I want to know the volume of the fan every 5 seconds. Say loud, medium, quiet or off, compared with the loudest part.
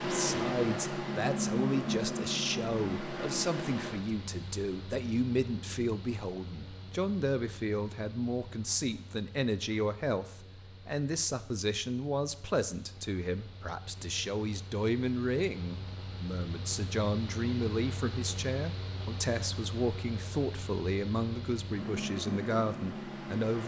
loud, quiet, quiet, medium, medium.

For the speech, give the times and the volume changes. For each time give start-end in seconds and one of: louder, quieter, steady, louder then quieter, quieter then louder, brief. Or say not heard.
0.0-23.6 steady.